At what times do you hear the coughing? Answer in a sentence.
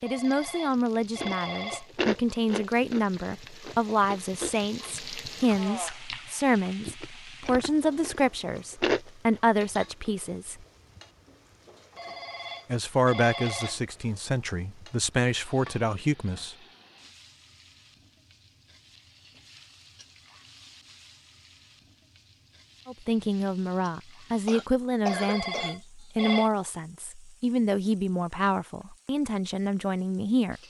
You can hear the coughing from 24.4 to 25.8 s.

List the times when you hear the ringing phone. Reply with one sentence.
You can hear the ringing phone from 0.1 to 1.9 s, from 11.9 to 13.8 s and from 25.1 to 26.5 s.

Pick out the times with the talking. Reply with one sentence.
The talking can be heard from 0.0 to 10.7 s, from 12.7 to 16.6 s and from 22.9 to 30.6 s.